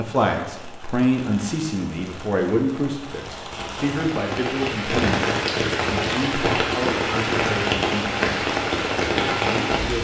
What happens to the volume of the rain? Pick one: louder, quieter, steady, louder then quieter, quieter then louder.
louder.